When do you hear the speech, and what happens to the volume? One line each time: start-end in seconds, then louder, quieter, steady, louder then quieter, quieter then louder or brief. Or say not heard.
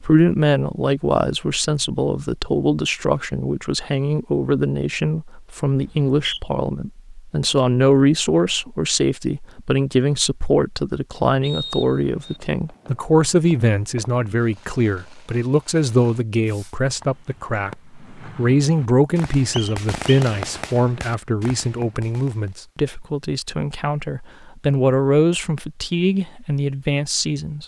0.0-27.6 steady.